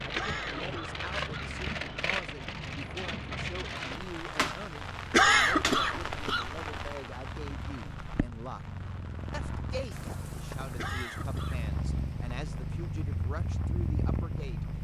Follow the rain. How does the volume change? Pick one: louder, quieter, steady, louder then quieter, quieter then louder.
quieter.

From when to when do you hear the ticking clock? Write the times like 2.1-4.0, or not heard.
not heard.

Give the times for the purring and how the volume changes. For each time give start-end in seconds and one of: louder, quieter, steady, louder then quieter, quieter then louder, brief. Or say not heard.
0.0-14.7 louder.